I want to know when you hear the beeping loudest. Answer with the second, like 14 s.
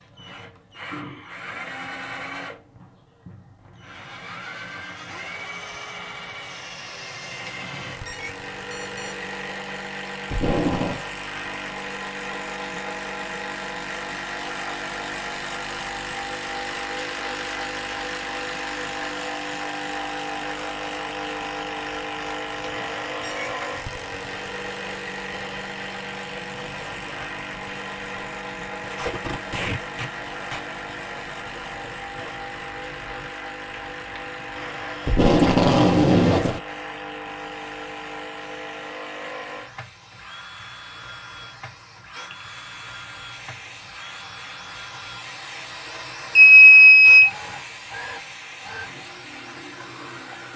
47 s.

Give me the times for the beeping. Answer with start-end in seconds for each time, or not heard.
7.4-9.2, 22.6-23.5, 46.4-47.3.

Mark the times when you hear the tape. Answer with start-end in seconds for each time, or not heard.
10.3-11.0, 28.9-30.6, 35.0-36.6.